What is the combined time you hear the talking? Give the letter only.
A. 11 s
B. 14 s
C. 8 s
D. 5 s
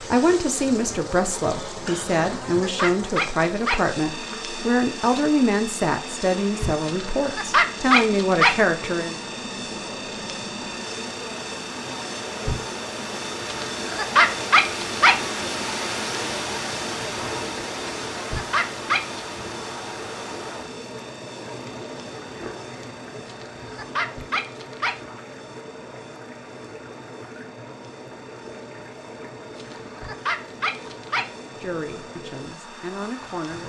A.